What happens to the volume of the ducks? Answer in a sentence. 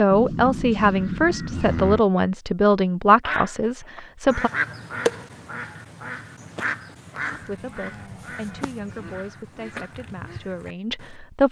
The loudness of the ducks goes down.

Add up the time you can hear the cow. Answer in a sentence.
The cow can be heard for 4 seconds in total.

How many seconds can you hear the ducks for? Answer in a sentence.
The ducks can be heard for 8 seconds in total.